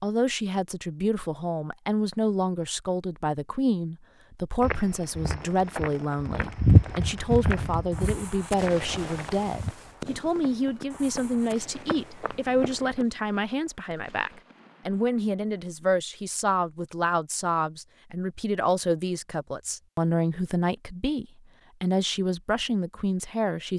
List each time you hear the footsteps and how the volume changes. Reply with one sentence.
You can hear the footsteps from 4.6 to 13.1 s, getting louder then quieter.